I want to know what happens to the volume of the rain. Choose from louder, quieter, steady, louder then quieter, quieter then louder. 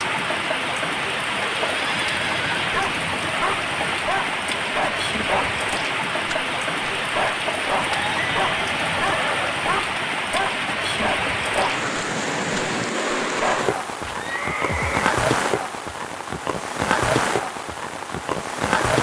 steady.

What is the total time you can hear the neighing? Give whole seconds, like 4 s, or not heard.
4 s.